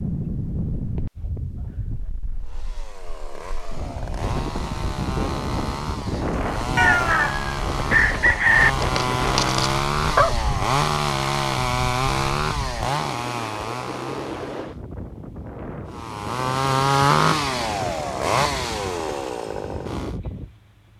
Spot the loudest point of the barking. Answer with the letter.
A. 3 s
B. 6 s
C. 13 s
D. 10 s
D.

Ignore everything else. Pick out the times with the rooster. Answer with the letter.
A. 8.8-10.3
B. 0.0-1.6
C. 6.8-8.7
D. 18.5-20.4
C.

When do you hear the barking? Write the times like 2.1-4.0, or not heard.
8.8-10.3.